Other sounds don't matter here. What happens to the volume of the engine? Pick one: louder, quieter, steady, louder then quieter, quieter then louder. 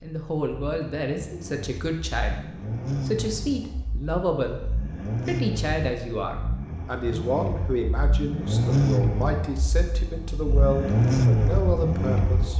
louder.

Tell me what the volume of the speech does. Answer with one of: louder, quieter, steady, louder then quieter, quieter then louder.
steady.